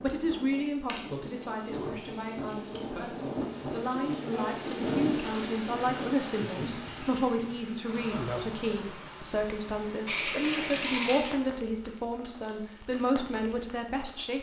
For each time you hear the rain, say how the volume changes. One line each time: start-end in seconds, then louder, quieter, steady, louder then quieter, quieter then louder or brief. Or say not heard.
0.0-14.3 louder then quieter.